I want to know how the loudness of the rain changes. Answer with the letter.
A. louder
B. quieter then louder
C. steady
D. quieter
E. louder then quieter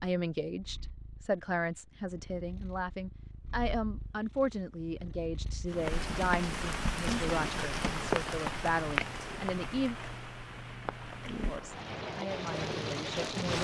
B.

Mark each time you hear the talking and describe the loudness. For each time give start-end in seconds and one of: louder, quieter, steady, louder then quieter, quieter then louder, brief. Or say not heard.
0.0-9.9 steady
11.4-13.5 brief.